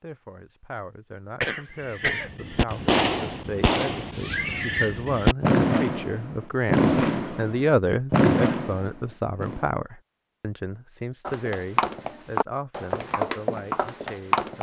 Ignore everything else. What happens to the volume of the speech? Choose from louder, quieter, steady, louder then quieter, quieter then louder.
louder then quieter.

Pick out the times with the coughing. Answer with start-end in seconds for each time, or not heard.
1.4-2.3.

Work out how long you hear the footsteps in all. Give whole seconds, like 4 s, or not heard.
3 s.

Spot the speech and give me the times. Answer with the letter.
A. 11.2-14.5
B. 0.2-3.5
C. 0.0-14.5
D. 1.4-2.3
C.